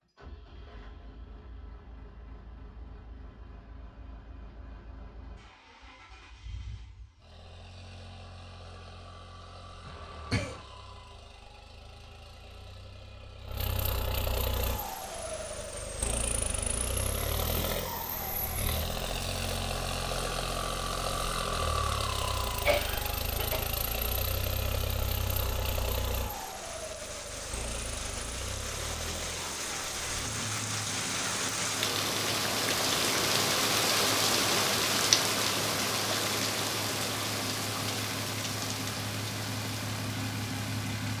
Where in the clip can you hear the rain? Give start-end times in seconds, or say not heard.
14.6-41.1.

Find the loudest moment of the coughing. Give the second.
23 s.